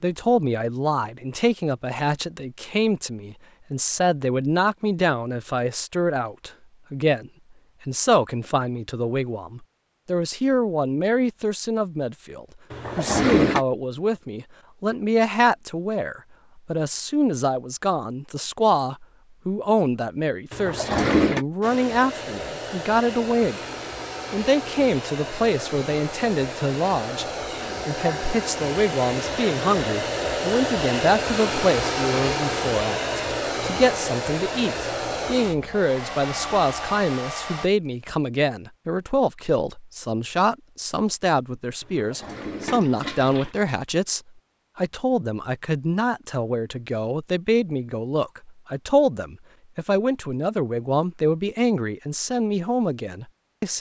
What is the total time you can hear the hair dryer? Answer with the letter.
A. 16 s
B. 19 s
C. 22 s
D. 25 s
A.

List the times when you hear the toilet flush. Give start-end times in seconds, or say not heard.
12.7-13.6, 20.5-21.4, 41.9-43.5.